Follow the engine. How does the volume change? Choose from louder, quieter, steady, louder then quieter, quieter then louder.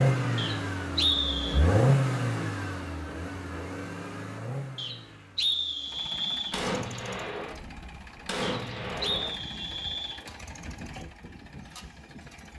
quieter.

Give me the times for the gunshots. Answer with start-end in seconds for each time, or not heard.
6.5-9.3.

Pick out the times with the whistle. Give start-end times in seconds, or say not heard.
0.3-1.6, 4.8-6.6, 8.4-10.2.